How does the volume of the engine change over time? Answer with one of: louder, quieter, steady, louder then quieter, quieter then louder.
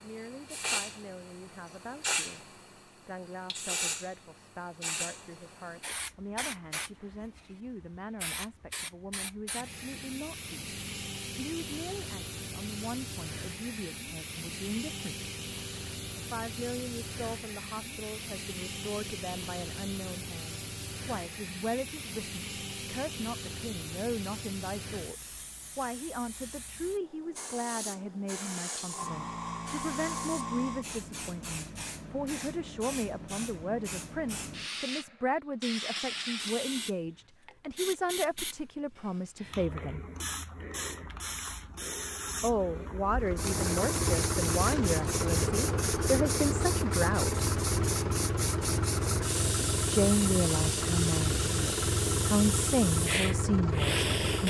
steady.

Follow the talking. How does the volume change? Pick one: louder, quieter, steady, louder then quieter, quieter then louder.
louder.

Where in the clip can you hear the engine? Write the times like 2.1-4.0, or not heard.
43.1-54.4.